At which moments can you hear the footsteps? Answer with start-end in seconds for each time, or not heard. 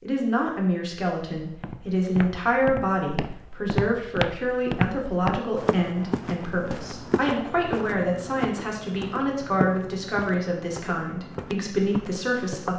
1.4-12.7.